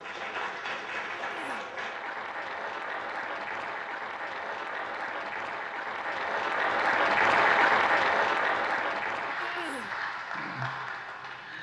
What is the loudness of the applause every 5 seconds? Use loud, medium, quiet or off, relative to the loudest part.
medium, loud, medium.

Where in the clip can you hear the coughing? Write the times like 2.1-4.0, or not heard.
1.1-1.7, 9.3-9.9.